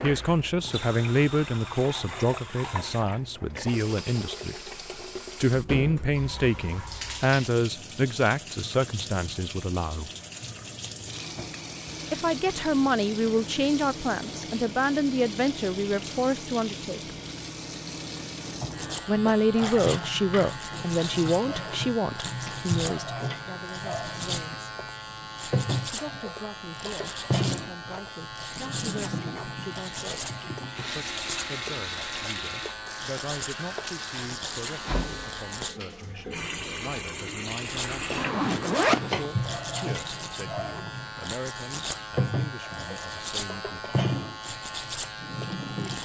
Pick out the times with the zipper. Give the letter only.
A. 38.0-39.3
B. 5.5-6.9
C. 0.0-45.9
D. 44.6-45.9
A.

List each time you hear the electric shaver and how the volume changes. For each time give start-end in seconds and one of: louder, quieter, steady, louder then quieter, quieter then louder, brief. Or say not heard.
18.7-35.8 steady
37.6-45.9 steady.